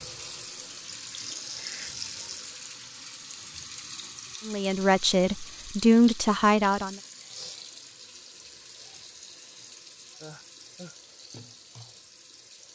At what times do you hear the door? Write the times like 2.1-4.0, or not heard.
not heard.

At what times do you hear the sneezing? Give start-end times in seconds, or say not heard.
1.1-2.0, 10.2-10.9.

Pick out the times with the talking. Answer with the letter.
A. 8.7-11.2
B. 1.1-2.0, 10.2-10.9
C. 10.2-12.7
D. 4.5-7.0
D.